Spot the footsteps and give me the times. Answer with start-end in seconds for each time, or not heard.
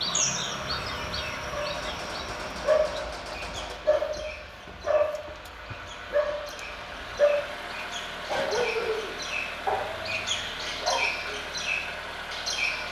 not heard.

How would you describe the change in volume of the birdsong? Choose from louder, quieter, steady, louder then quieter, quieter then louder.
quieter then louder.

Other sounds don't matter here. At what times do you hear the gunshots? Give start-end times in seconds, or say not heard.
1.7-3.8.